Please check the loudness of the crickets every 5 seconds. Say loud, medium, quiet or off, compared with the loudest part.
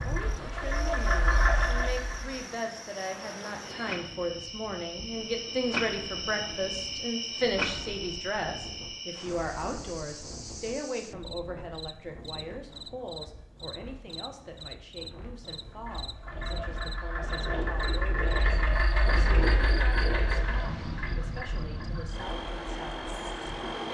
medium, loud, medium, medium, medium.